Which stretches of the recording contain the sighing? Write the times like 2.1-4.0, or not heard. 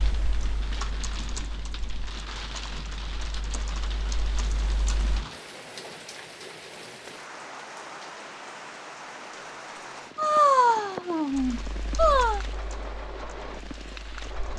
10.2-12.4.